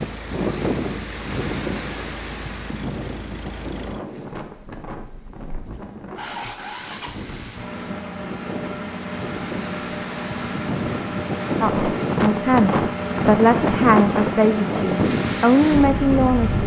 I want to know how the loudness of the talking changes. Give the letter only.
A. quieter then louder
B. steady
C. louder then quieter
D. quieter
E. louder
A.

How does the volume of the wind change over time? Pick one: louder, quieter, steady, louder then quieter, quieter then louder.
quieter then louder.